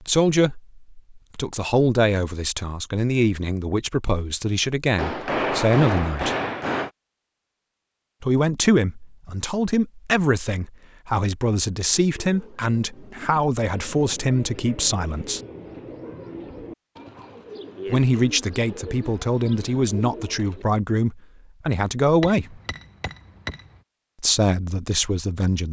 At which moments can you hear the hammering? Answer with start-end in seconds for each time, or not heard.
5.0-6.9, 22.2-23.8.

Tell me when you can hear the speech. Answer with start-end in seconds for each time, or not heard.
0.0-6.3, 8.2-15.4, 17.9-22.6, 24.2-25.6.